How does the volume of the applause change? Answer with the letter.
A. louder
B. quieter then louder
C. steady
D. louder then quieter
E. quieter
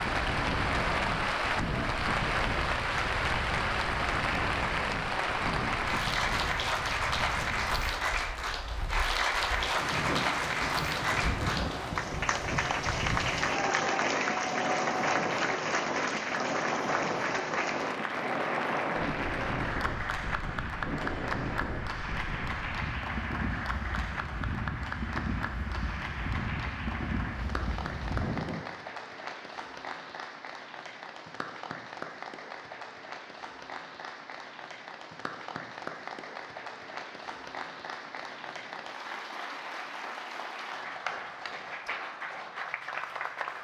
E.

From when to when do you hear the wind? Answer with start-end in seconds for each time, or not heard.
0.0-28.6.